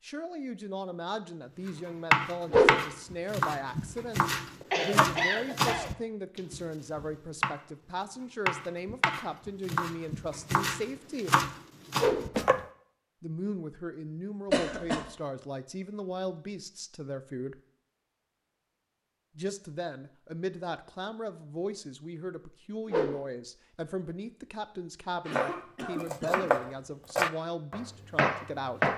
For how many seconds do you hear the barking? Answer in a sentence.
The barking can't be heard in this clip.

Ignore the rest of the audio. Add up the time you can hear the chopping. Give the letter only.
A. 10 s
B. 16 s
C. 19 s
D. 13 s
D.